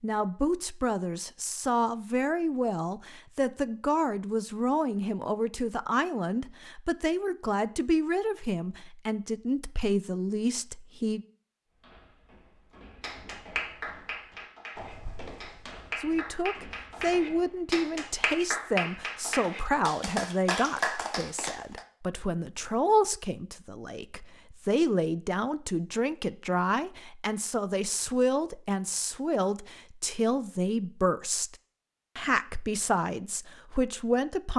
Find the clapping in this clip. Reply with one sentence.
You can hear the clapping from 13.0 to 21.9 s.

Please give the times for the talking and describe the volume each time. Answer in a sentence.
You can hear the talking from 0.0 to 11.2 s, at a steady volume; from 16.0 to 31.6 s, at a steady volume; and briefly from 32.1 to 34.5 s.